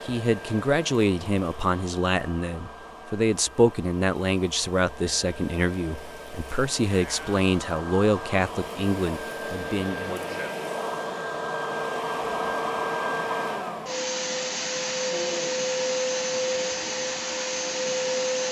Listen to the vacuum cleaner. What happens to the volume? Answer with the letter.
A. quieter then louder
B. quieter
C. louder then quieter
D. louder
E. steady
D.